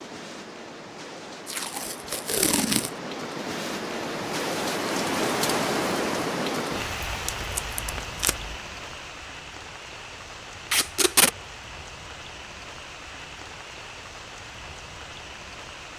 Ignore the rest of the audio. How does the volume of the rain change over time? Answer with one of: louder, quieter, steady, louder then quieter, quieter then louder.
louder then quieter.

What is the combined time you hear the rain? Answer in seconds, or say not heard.
16 s.